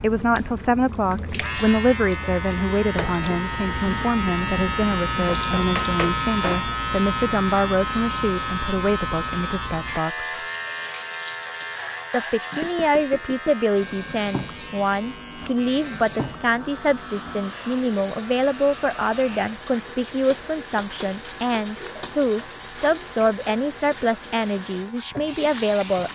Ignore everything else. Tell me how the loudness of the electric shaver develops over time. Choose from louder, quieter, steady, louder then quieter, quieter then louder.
quieter.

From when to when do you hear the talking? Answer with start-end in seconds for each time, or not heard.
0.0-10.3, 12.1-26.1.